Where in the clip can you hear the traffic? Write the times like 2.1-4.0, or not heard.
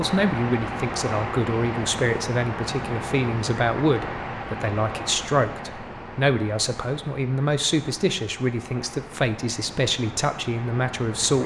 0.0-11.4.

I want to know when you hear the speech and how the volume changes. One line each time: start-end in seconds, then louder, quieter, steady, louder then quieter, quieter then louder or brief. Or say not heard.
0.0-11.4 steady.